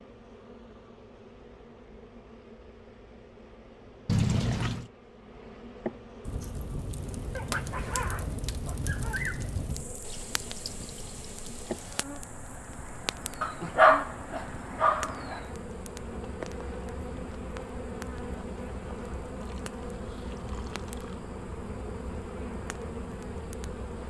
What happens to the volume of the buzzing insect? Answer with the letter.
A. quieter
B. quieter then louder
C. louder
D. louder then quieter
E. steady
C.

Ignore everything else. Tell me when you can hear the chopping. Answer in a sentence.
You can't hear the chopping here.